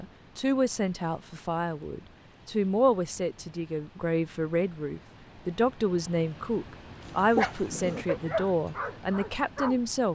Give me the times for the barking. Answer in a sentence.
The barking can be heard from 7.0 to 9.8 s.